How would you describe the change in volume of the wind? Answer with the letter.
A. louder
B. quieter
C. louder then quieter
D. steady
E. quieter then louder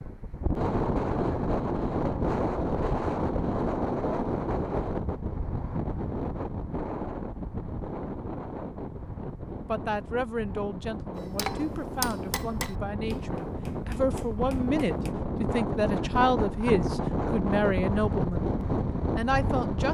E.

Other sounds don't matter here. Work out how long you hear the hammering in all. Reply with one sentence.
The hammering can be heard for 4 seconds in total.